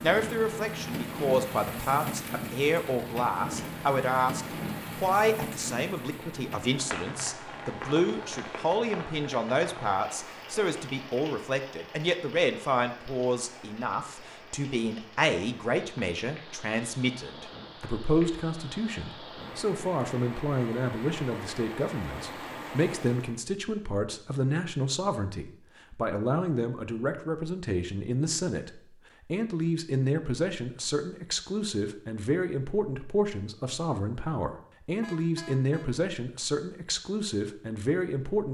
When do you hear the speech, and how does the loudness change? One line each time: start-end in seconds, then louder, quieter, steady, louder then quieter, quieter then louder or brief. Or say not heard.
0.0-38.4 steady.